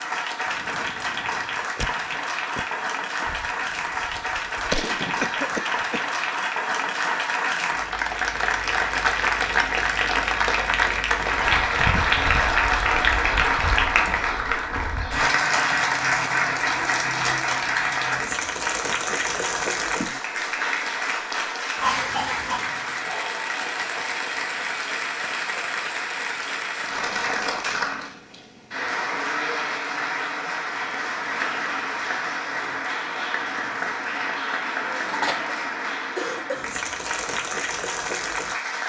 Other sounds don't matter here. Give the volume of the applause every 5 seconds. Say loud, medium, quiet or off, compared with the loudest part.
medium, loud, loud, loud, medium, medium, medium, medium.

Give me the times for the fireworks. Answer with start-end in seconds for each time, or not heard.
0.5-5.8.